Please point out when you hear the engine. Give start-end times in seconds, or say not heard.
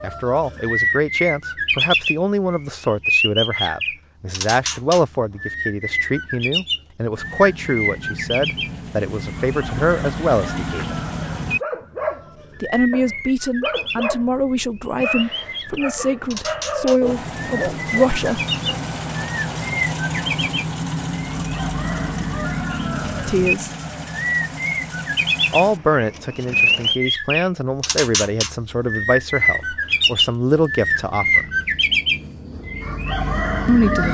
7.1-11.7, 17.0-27.0.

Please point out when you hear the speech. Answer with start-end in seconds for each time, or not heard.
0.0-10.8, 12.6-18.4, 23.2-23.7, 25.5-31.4, 33.6-34.1.